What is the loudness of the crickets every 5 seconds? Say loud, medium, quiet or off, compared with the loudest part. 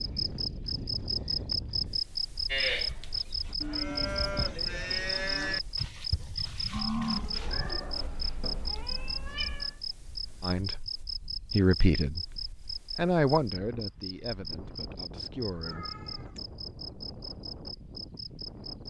loud, loud, medium, medium.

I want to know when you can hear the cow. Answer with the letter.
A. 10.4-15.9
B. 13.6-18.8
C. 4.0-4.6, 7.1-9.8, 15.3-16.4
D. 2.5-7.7
D.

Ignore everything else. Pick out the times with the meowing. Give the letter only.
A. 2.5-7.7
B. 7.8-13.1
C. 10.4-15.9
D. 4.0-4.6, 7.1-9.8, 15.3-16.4
D.